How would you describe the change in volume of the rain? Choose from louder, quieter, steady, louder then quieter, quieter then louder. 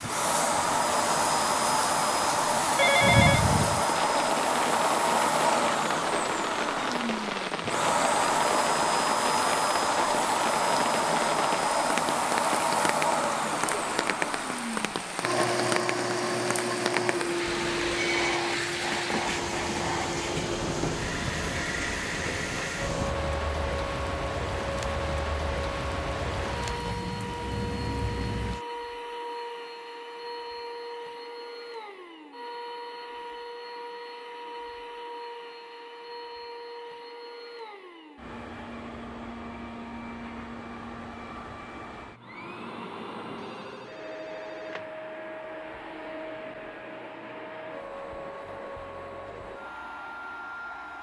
steady.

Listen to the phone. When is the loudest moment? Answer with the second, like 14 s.
3 s.